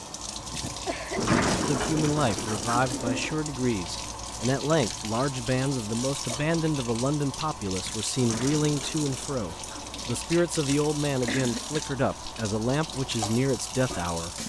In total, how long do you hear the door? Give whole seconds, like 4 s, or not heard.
4 s.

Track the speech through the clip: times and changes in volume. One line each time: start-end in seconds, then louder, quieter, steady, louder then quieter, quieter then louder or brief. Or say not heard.
1.6-14.3 steady.